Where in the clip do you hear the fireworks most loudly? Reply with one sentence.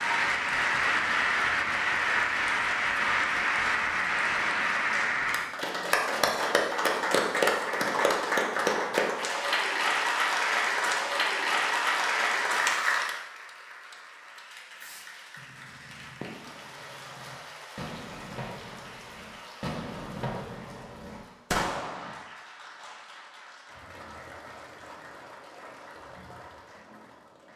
The volume of the fireworks peaks at 22 seconds.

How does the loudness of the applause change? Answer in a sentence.
The loudness of the applause goes down.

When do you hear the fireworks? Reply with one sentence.
The fireworks can be heard from 14.7 to 22.2 s.